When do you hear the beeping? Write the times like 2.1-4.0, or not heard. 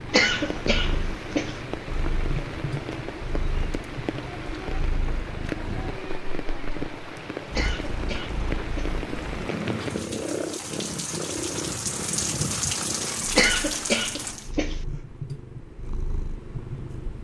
not heard.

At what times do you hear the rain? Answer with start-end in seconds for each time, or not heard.
0.0-14.5.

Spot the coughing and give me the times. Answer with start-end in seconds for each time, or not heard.
0.1-1.6, 7.5-9.0, 13.3-14.8.